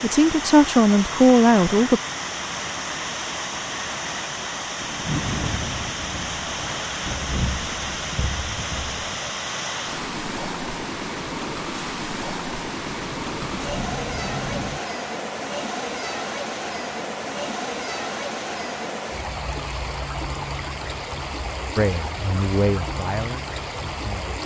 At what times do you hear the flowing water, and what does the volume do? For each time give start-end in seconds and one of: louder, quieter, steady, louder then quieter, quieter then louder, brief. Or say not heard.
0.0-24.4 steady.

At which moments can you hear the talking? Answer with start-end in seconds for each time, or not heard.
0.0-2.0, 21.8-24.4.